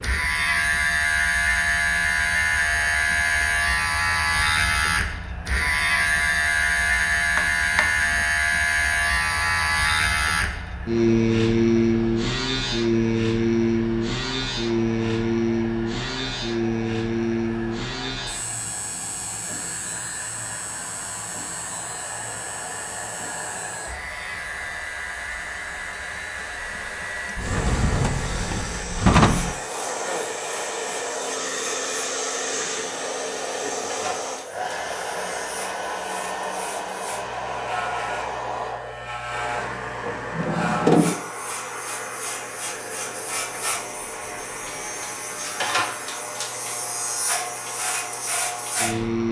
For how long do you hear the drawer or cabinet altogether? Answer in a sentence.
The drawer or cabinet can be heard for 5 seconds in total.